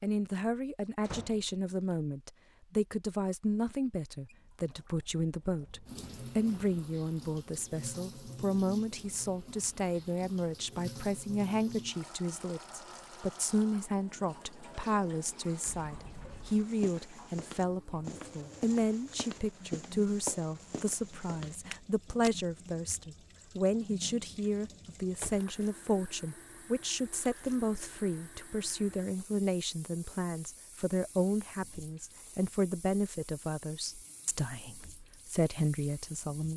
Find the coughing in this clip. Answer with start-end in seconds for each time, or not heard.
not heard.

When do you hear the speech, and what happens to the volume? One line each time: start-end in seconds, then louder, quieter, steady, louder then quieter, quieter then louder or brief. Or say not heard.
0.0-36.5 steady.